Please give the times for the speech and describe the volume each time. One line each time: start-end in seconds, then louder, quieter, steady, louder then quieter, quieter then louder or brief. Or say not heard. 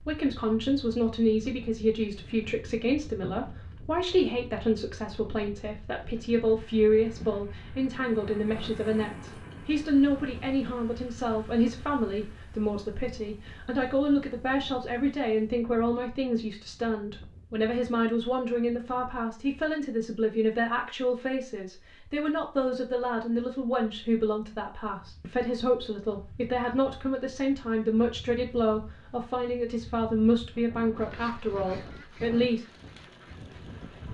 0.0-32.6 steady.